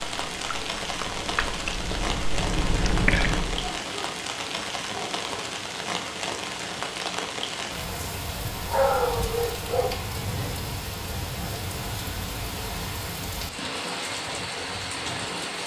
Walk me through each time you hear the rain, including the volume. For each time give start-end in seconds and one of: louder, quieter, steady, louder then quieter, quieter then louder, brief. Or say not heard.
0.0-15.6 steady.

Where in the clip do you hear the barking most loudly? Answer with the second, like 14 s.
9 s.